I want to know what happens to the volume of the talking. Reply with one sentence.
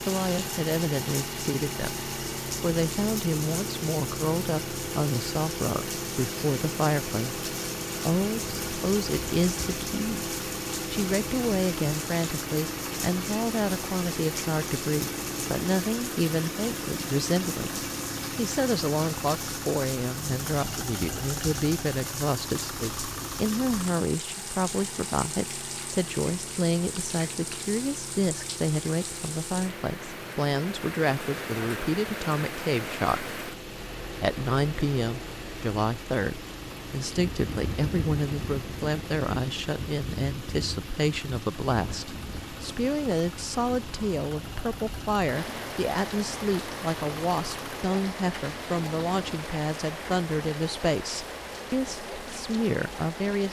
The loudness of the talking stays about the same.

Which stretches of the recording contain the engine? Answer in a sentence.
You can hear the engine from 0.0 to 49.5 s.